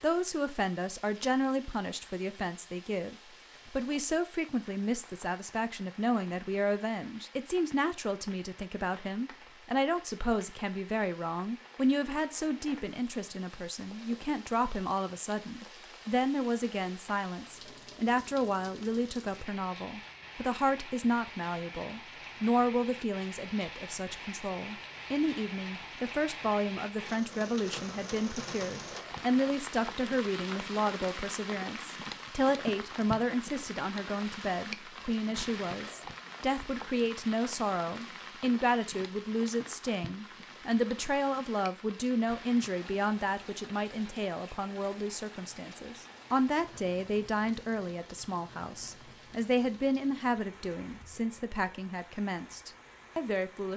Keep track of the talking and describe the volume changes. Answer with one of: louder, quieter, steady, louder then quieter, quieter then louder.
steady.